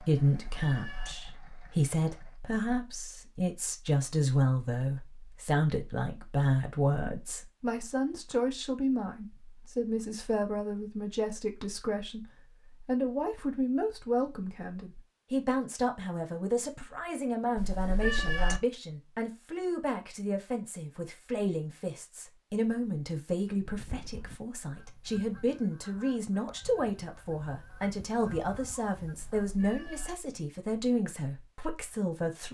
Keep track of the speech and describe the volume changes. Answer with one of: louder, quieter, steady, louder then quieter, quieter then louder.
steady.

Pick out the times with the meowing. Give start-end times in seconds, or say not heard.
0.2-1.1, 17.6-18.6, 29.4-30.1.